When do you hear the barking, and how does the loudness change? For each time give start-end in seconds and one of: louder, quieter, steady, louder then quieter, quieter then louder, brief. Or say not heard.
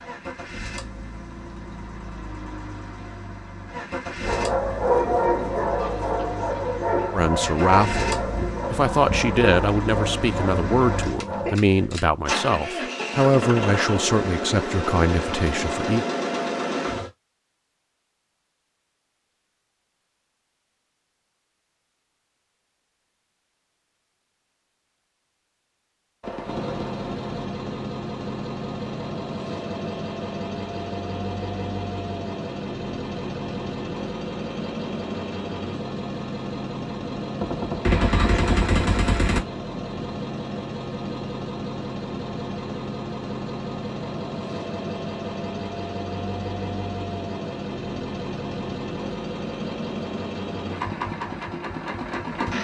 4.2-11.6 quieter.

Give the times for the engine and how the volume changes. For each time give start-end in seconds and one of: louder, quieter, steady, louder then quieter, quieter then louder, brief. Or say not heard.
0.0-17.1 louder
26.4-52.5 steady.